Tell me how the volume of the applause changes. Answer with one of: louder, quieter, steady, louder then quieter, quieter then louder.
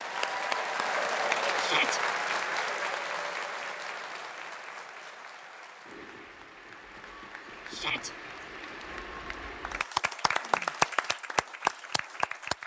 quieter then louder.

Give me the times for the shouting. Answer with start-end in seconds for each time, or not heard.
1.6-2.0, 7.7-8.1.